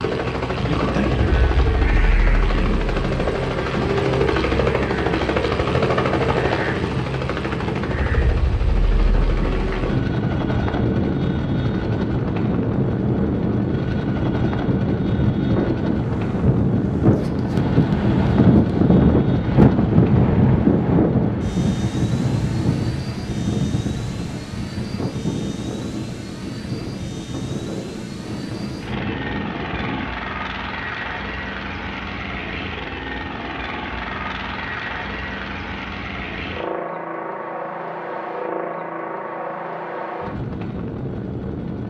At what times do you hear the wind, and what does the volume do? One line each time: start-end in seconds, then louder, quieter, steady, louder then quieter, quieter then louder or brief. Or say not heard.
0.0-30.1 louder then quieter.